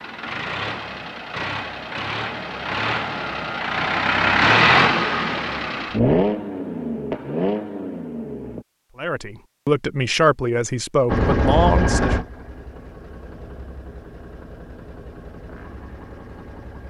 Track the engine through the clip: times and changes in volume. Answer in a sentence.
The engine can be heard from 0.0 to 8.7 s, getting louder then quieter; and from 11.1 to 16.8 s, getting quieter.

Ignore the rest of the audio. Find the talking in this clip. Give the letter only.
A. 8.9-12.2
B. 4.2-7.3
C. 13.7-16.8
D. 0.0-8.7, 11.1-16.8
A.